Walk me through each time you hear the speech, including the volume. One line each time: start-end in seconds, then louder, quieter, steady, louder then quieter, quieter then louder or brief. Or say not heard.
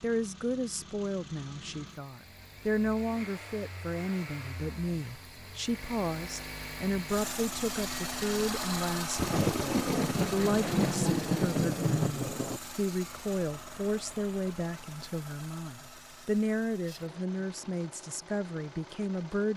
0.0-19.5 steady.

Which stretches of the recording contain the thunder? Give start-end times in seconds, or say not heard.
9.2-12.6.